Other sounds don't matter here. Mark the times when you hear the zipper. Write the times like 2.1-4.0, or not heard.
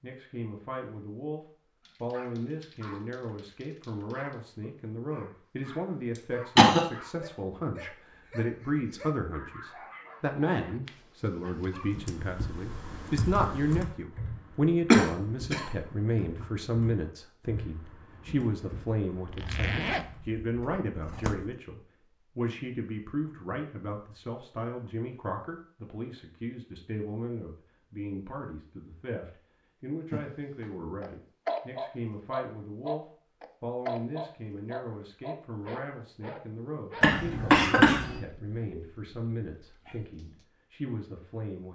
19.1-21.6.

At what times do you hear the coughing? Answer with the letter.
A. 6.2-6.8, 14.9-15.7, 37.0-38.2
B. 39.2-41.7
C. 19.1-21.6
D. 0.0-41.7
A.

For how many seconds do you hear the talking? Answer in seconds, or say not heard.
42 s.